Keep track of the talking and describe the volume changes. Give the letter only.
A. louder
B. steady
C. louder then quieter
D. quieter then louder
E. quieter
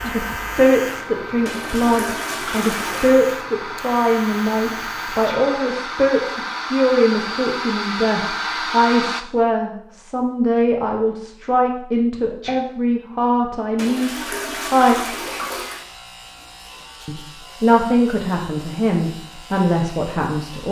B.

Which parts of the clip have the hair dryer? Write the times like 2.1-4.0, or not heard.
0.0-9.2.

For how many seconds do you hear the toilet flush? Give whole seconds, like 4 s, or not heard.
4 s.